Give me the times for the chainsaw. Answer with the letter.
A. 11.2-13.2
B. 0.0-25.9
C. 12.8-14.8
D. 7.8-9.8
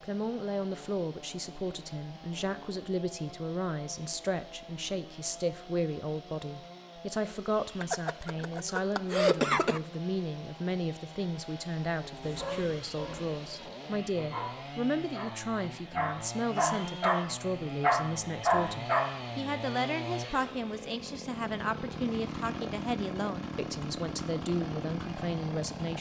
B.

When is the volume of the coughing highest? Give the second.
9 s.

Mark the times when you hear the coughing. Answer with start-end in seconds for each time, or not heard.
7.8-9.8.